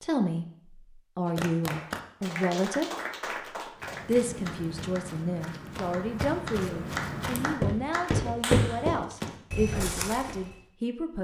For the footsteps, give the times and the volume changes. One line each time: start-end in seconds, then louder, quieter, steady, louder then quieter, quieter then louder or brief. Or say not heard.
3.8-10.6 louder then quieter.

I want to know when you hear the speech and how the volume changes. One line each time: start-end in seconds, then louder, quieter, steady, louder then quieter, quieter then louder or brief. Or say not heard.
0.0-2.9 brief
4.0-11.1 steady.